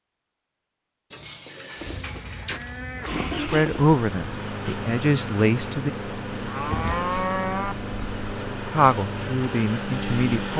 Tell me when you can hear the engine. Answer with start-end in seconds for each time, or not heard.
1.8-10.5.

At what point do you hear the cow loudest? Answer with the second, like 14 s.
7 s.